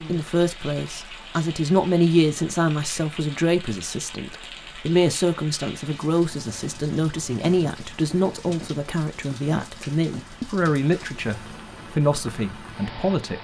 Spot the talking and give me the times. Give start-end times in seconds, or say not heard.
0.1-13.4.